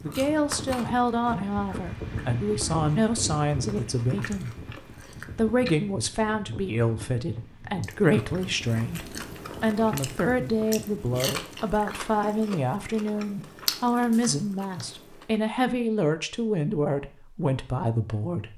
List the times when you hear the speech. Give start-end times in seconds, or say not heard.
0.0-4.5, 5.3-18.5.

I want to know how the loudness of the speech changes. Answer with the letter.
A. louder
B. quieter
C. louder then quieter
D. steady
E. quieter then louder
D.